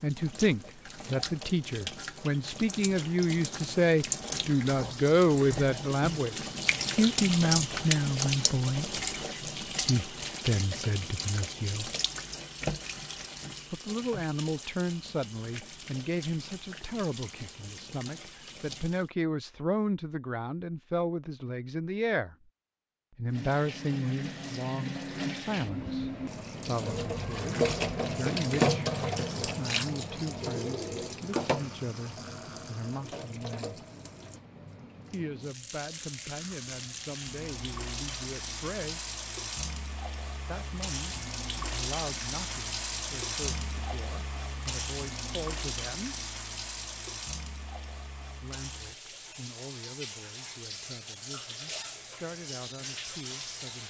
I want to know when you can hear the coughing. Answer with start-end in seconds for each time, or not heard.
not heard.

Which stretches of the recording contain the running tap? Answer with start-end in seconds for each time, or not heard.
0.0-19.1, 23.3-53.8.